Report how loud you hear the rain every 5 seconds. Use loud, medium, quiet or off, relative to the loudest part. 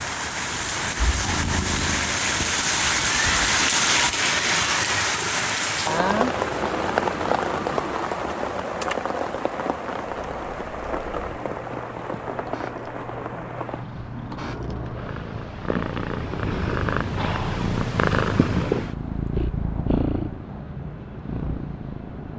loud, loud, medium, quiet, quiet.